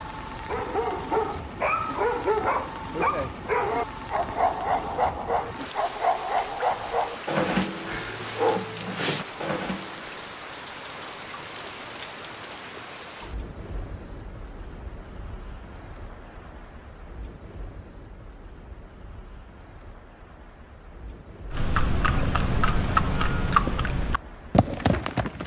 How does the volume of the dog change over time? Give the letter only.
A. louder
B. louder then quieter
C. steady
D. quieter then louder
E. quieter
C.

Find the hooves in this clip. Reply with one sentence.
You can hear the hooves from 21.5 to 25.4 s.